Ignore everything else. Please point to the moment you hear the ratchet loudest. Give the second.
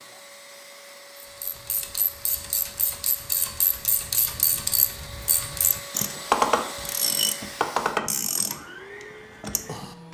6 s.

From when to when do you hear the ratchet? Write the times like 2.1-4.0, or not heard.
1.2-10.0.